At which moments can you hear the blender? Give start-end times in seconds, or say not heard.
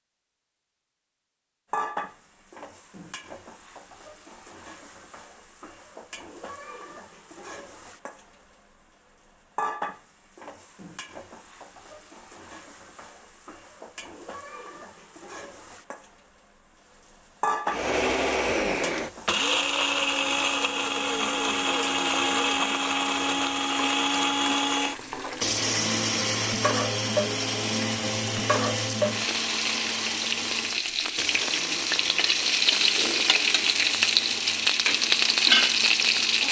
17.6-36.4.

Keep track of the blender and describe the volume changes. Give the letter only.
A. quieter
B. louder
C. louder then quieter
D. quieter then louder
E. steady
A.